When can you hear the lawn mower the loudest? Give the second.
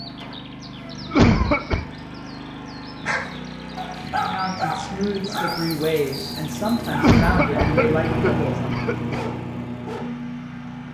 8 s.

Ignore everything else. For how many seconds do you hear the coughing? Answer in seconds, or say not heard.
3 s.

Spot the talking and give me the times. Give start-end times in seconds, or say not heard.
4.2-8.8.